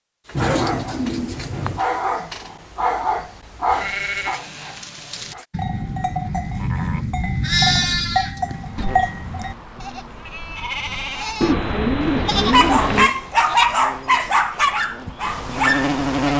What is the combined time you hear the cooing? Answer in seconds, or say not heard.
3 s.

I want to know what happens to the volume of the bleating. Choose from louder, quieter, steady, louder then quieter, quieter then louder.
louder then quieter.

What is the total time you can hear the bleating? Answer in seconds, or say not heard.
10 s.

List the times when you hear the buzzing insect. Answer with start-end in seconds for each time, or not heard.
8.4-16.3.